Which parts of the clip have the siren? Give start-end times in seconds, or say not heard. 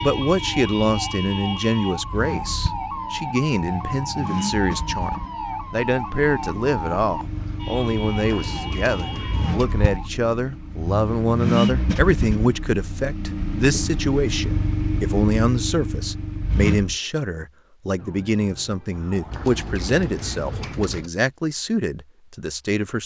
0.0-10.1, 17.9-20.8.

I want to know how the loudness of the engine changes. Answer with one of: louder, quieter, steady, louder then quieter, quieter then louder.
louder.